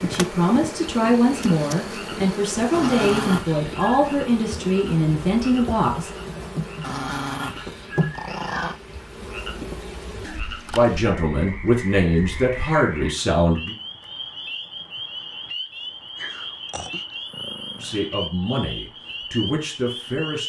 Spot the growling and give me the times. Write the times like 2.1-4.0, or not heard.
2.7-4.2, 6.8-8.8, 16.1-18.0.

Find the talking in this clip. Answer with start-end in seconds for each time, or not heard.
0.0-6.1, 10.7-13.8, 17.8-20.4.